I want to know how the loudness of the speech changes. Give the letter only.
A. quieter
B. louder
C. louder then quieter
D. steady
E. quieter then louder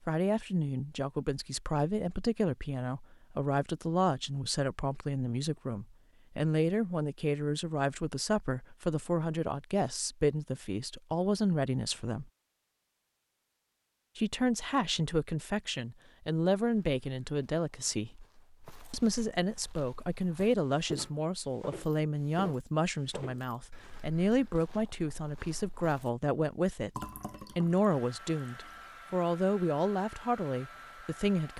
D.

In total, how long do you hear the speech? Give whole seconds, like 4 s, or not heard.
29 s.